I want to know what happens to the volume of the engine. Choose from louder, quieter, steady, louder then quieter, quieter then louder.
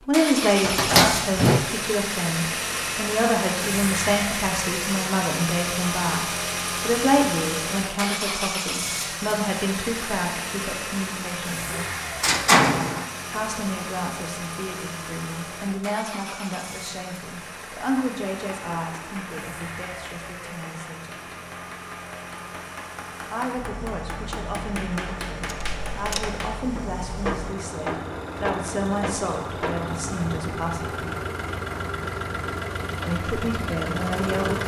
quieter then louder.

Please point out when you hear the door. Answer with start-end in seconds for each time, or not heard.
0.6-1.6, 11.7-13.1, 25.4-26.3.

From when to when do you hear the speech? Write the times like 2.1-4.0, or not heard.
0.0-11.9, 13.3-21.4, 23.3-31.1, 33.0-34.6.